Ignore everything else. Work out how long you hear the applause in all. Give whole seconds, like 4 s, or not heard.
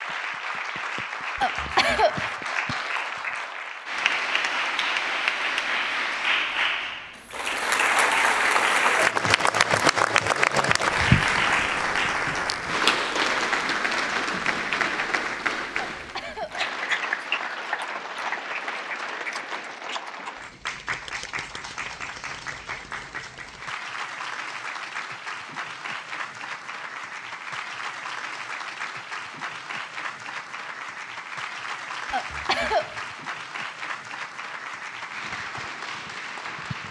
37 s.